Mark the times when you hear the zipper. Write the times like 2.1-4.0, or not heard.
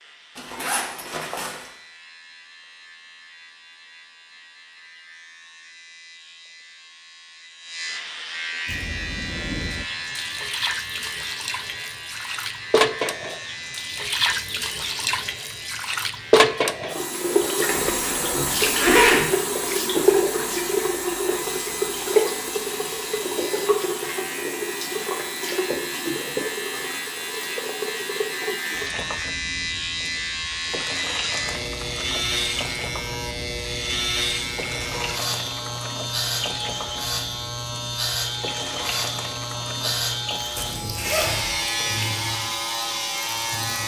0.3-1.7, 17.6-19.2, 40.5-41.6.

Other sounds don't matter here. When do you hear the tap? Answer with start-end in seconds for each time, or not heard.
8.7-43.8.